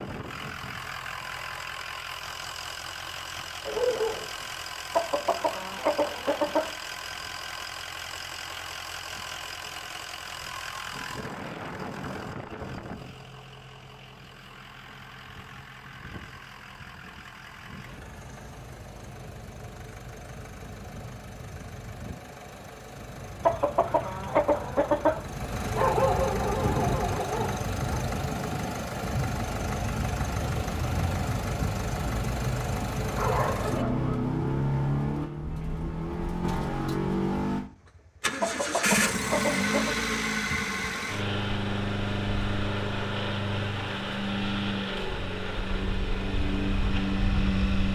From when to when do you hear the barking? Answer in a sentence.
The barking can be heard from 3.6 to 4.2 s, from 25.8 to 28.0 s and from 33.0 to 34.1 s.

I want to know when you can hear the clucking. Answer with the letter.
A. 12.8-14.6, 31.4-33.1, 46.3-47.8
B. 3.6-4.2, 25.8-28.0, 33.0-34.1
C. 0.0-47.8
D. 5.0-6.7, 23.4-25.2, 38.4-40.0
D.